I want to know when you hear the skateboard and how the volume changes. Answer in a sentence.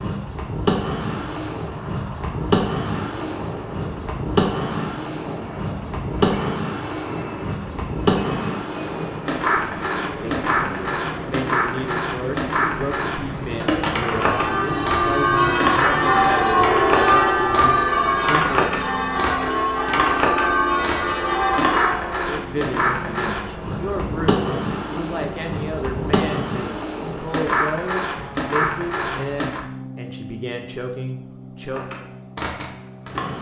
The skateboard can be heard from 0.0 to 29.6 s, at a steady volume; and briefly from 31.7 to 33.3 s.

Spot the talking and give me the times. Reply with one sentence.
The talking can be heard from 10.0 to 18.9 s and from 22.2 to 31.9 s.